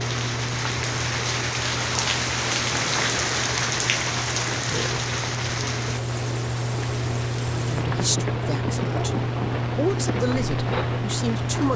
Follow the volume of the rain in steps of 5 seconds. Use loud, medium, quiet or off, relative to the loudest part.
loud, medium, medium.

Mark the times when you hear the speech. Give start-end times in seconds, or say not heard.
7.5-11.7.